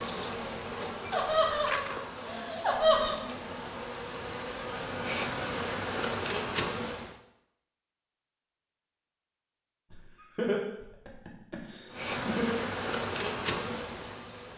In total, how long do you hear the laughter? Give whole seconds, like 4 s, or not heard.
5 s.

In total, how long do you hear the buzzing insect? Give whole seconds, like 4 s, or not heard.
10 s.